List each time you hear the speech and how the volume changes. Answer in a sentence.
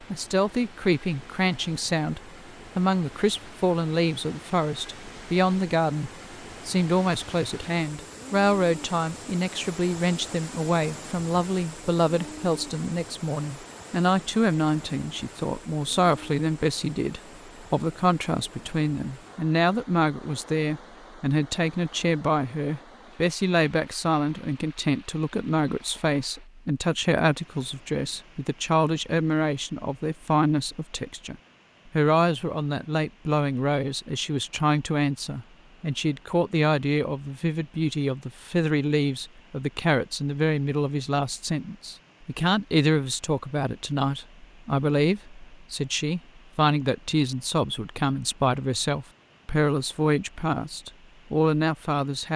You can hear the speech from 0.0 to 52.3 s, at a steady volume.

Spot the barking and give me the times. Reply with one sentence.
The barking can't be heard in this clip.